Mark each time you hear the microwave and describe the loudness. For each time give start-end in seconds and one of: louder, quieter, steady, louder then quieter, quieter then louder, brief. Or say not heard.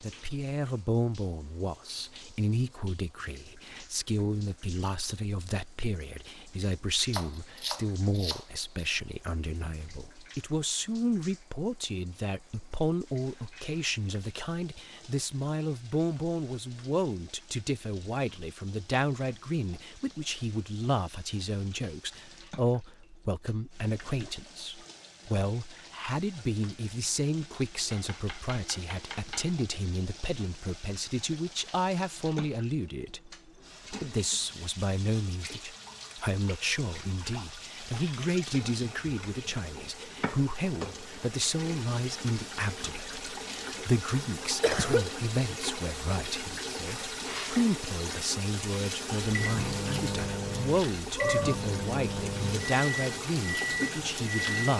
49.2-54.7 steady.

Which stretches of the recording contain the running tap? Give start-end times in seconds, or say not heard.
0.0-54.7.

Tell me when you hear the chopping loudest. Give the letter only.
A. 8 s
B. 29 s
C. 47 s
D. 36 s
A.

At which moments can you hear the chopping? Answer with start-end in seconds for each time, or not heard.
7.1-8.9, 27.9-29.6.